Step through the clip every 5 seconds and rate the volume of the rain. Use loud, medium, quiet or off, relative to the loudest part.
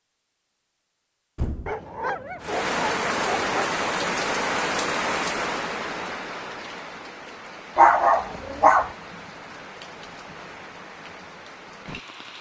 loud, medium, quiet.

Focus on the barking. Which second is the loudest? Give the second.
8 s.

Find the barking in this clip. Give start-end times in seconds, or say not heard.
1.6-3.5, 7.8-8.9.